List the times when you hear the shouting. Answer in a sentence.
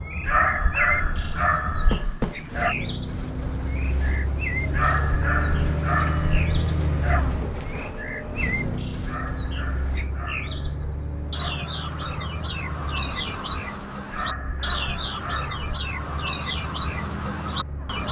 The shouting can't be heard in this clip.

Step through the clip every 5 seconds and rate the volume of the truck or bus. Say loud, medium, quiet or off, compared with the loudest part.
loud, loud, medium, medium.